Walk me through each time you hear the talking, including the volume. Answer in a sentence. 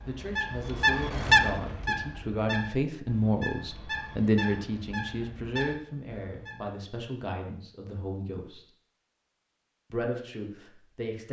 The talking can be heard from 0.1 to 8.7 s, getting louder then quieter; and briefly from 9.9 to 11.2 s.